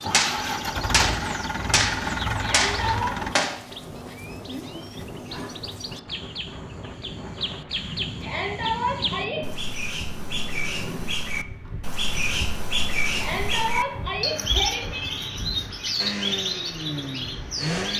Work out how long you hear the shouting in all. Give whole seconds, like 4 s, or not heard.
4 s.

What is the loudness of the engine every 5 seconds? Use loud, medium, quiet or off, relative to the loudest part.
loud, off, off, loud.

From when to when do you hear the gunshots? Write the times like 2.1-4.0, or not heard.
0.1-3.5.